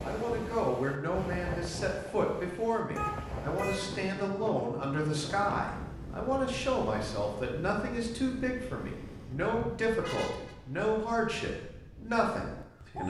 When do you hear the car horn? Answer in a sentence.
You can hear the car horn from 3.0 to 4.0 s and from 9.5 to 10.6 s.